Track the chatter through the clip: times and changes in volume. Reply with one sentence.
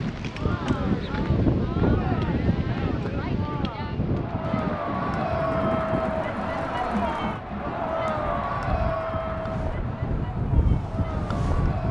The chatter can be heard from 0.2 to 11.8 s, getting louder then quieter.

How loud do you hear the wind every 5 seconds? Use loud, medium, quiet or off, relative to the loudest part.
loud, medium, loud.